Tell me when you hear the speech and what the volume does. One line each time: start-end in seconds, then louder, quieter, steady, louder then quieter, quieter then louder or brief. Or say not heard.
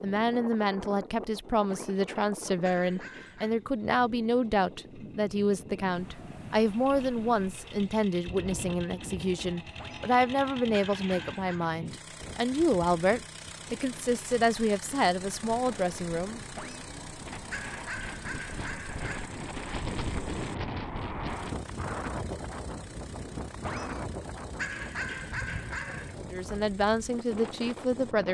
0.0-16.4 steady
26.1-28.2 brief.